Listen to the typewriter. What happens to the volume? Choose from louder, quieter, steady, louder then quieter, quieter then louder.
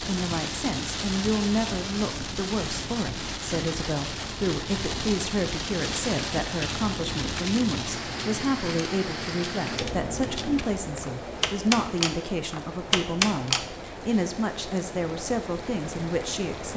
louder.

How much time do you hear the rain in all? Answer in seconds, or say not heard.
17 s.